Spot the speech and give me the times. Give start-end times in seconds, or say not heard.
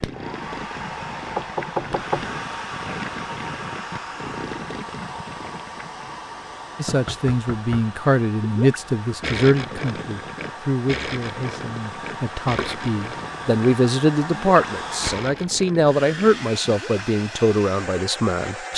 6.8-18.7.